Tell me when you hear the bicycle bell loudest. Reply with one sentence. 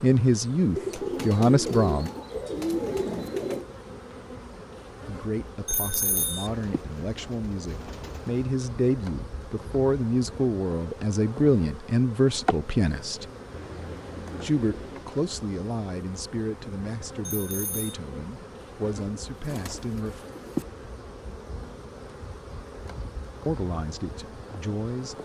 The volume of the bicycle bell peaks at 6 seconds.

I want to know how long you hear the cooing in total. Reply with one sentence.
The cooing can be heard for 8 seconds in total.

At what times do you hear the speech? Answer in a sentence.
The speech can be heard from 0.0 to 2.1 s, from 5.0 to 13.2 s, from 14.4 to 20.2 s and from 23.4 to 25.1 s.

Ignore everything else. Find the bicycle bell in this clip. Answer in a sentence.
The bicycle bell can be heard from 5.7 to 6.5 s and from 17.2 to 17.9 s.